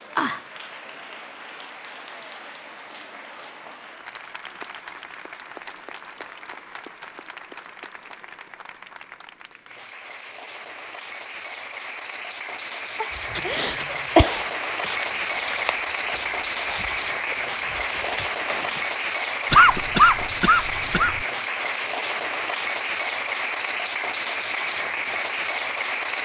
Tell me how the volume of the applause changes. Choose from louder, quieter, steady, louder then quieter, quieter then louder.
louder.